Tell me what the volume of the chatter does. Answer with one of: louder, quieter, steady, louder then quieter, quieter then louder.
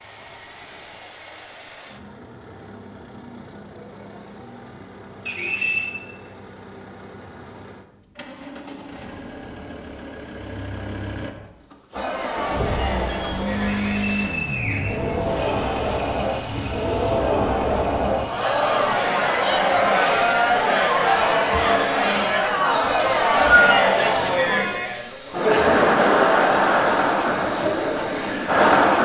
louder.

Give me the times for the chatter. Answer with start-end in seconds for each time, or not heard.
11.9-29.0.